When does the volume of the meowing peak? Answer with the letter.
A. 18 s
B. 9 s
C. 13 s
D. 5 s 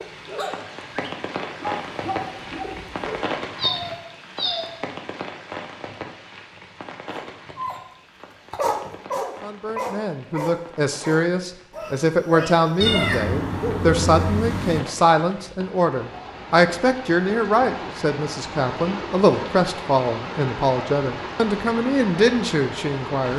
C.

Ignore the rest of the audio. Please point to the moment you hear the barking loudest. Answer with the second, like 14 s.
9 s.